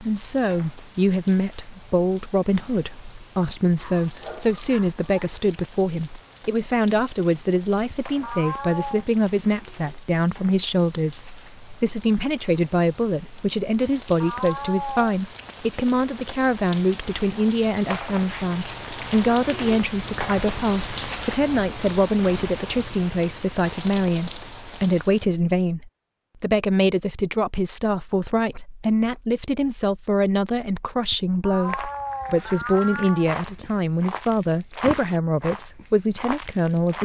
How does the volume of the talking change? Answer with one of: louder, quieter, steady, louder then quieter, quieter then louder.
steady.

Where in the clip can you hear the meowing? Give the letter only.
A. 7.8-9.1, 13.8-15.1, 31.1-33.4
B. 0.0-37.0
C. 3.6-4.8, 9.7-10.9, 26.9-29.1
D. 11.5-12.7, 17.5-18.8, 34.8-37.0
A.